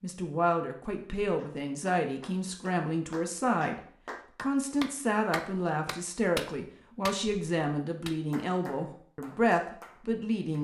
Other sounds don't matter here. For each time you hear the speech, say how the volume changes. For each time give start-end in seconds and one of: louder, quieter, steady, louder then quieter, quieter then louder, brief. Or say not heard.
0.0-10.5 steady.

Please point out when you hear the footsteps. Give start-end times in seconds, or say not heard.
not heard.